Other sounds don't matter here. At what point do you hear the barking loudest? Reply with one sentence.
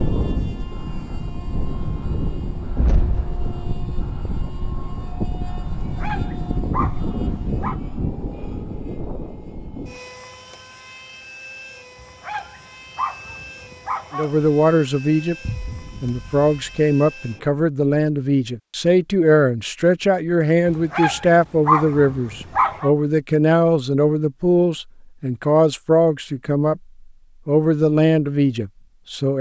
The loudest moment of the barking is at 22 seconds.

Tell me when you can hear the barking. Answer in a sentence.
You can hear the barking from 5.8 to 7.8 s, from 11.9 to 14.4 s and from 20.6 to 22.9 s.